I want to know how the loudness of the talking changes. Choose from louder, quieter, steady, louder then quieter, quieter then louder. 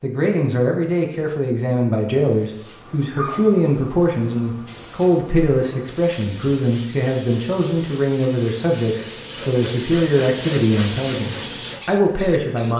steady.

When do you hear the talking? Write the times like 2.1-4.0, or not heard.
0.0-12.7.